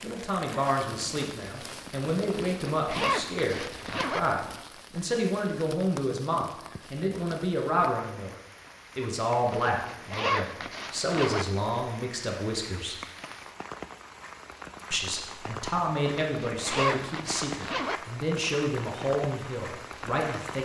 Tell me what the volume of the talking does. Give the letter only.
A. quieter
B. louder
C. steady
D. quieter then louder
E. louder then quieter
C.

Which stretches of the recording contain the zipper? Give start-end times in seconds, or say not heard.
2.2-4.2, 9.5-11.4, 16.1-18.0.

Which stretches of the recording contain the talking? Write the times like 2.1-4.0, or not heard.
0.0-8.3, 8.9-12.9, 14.9-20.6.